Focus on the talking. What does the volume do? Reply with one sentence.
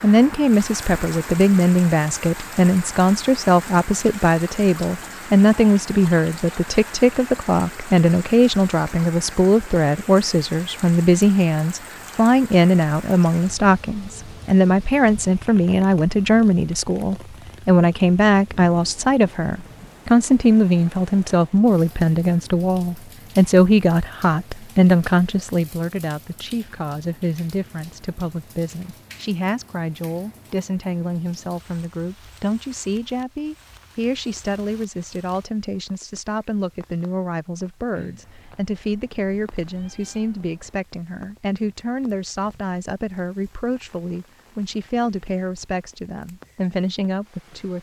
The loudness of the talking goes down.